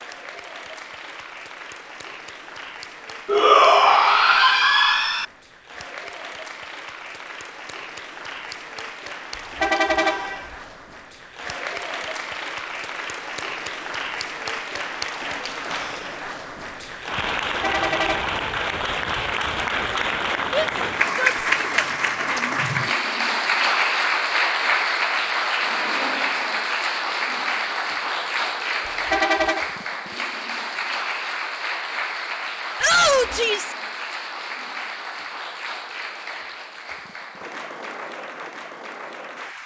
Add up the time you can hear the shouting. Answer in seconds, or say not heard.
5 s.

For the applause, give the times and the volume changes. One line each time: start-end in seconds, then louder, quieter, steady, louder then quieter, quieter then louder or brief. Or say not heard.
0.0-39.6 louder then quieter.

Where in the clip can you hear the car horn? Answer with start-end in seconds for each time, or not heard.
9.3-10.6, 17.6-18.4, 28.9-29.6.